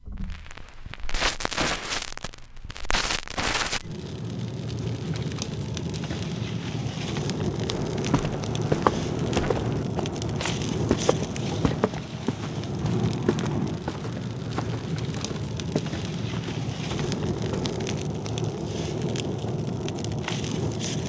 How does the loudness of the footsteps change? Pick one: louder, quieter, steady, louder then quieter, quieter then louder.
quieter.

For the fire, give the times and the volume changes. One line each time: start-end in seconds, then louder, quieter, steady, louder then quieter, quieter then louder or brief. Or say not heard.
0.0-21.0 steady.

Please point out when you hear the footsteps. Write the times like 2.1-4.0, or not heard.
7.7-17.9.